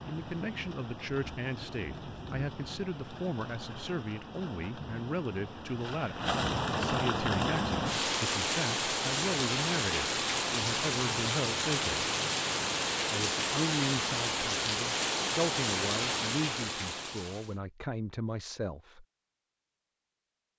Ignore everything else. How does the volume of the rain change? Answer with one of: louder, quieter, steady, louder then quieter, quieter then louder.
louder.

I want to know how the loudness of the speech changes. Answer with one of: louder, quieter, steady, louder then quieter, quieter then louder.
steady.